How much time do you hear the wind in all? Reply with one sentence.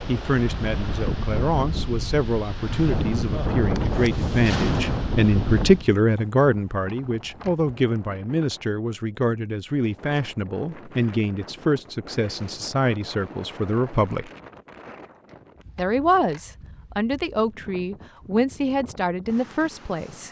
The wind can be heard for 20 seconds in total.